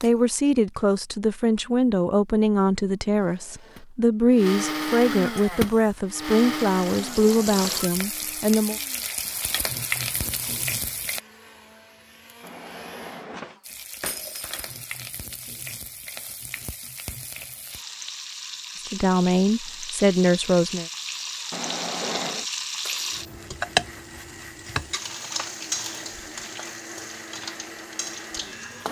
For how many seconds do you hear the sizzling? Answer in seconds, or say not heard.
21 s.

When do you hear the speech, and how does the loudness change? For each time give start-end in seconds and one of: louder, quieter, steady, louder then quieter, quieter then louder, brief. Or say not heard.
0.0-8.8 steady
18.9-20.9 brief.